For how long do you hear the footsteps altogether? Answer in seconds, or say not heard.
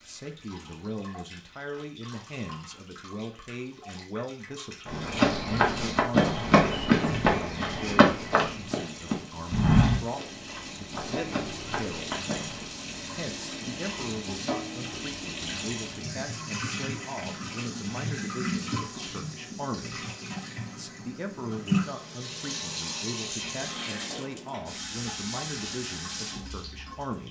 8 s.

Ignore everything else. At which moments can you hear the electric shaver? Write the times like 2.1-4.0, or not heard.
not heard.